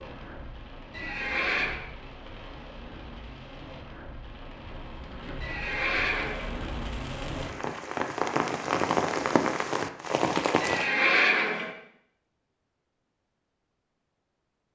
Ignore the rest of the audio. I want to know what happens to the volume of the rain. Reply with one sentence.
The loudness of the rain goes up.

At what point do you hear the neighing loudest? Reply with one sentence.
The volume of the neighing peaks at 11 seconds.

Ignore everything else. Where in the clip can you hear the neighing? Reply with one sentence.
The neighing can be heard from 0.9 to 1.8 s, from 5.4 to 6.5 s and from 10.6 to 11.7 s.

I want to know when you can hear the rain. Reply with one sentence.
You can hear the rain from 0.0 to 10.9 s.